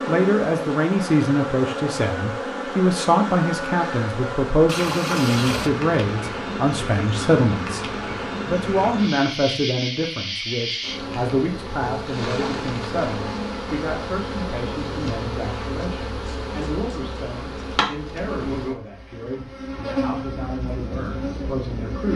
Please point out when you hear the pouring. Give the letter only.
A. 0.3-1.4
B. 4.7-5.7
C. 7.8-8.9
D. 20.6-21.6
B.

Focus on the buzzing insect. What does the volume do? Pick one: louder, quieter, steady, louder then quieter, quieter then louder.
steady.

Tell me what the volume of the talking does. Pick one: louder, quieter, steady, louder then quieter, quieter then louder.
quieter.